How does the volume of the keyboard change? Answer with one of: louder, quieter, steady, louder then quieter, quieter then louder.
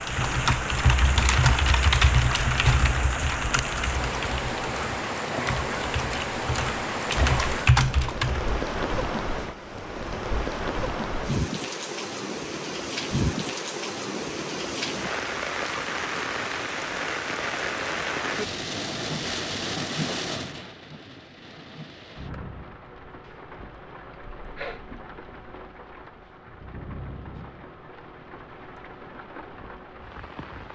quieter then louder.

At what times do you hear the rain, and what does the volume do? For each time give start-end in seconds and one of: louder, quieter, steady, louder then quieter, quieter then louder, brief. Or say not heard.
0.0-30.7 quieter.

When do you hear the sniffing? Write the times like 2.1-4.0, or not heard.
24.1-24.8.